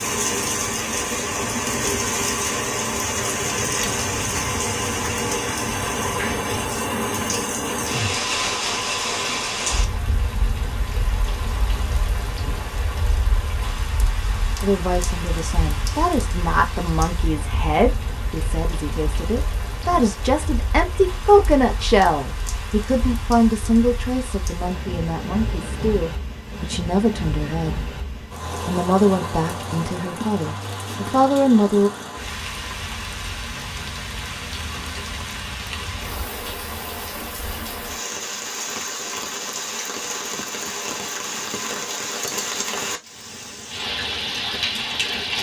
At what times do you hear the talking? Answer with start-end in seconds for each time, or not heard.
14.6-27.9, 28.6-31.9.